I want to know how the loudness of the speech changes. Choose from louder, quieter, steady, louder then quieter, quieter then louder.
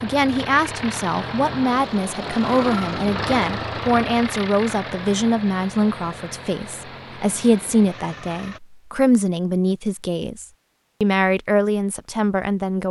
steady.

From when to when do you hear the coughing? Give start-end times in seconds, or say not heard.
not heard.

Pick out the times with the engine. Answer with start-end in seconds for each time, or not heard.
0.0-8.6.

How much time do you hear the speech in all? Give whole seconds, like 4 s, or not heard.
13 s.